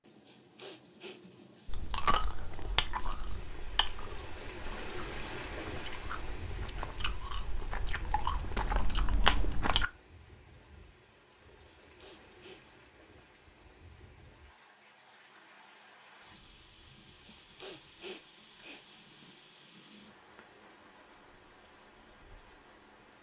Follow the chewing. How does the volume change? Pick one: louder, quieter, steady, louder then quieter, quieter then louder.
quieter then louder.